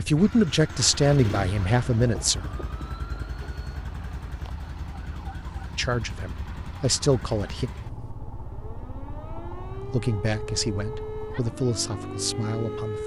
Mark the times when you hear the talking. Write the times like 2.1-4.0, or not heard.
0.0-2.5, 5.8-7.7, 9.9-13.0.